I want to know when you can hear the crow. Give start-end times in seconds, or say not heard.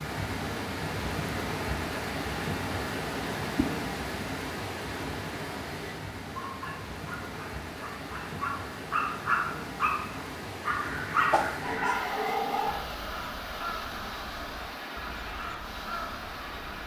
10.8-16.8.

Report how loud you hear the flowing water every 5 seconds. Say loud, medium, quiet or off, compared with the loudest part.
loud, medium, medium, medium.